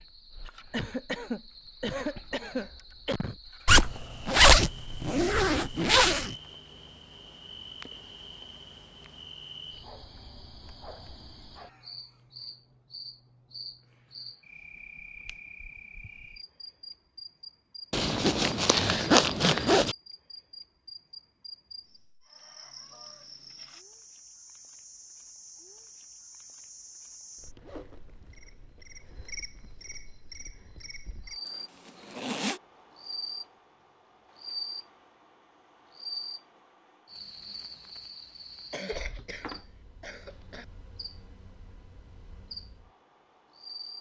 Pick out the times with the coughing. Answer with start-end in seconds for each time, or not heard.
0.7-3.4, 38.7-40.6.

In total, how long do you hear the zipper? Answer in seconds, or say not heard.
6 s.